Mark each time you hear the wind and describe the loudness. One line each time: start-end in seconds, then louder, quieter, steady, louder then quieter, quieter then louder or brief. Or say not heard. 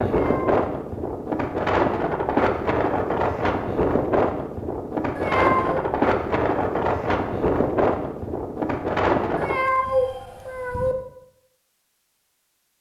0.0-9.6 steady.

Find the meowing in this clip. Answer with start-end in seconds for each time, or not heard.
0.1-0.6, 5.2-5.8, 9.3-10.9.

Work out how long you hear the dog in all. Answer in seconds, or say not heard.
not heard.